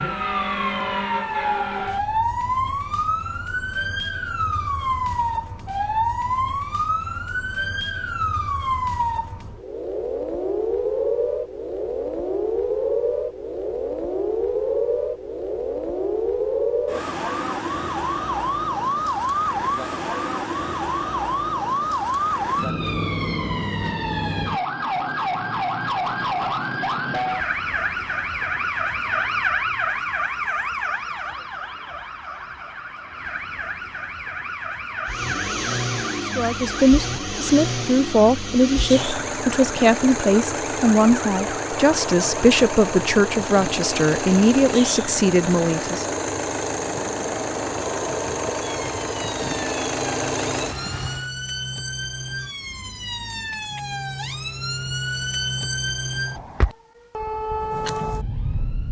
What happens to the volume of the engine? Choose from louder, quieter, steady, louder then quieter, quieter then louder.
steady.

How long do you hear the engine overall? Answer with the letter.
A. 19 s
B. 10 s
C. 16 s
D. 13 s
C.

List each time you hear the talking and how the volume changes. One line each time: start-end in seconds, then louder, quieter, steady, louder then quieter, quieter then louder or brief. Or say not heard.
36.4-46.0 steady.